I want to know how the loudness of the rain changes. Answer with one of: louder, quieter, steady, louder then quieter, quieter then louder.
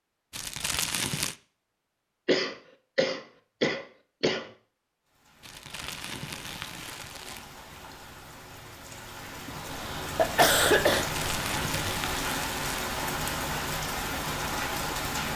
louder.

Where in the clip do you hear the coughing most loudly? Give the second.
11 s.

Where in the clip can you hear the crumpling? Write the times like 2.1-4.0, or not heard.
0.3-1.4, 5.4-7.5, 11.0-12.8.